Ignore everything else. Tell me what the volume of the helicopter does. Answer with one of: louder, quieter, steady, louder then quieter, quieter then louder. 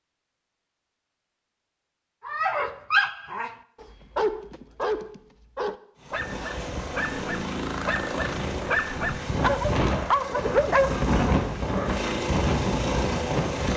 louder.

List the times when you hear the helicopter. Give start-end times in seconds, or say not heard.
6.0-13.7.